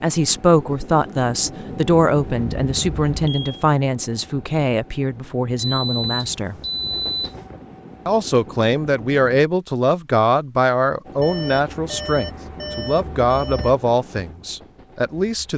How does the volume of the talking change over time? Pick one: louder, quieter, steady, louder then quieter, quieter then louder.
steady.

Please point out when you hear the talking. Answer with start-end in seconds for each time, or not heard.
0.0-6.5, 8.1-15.5.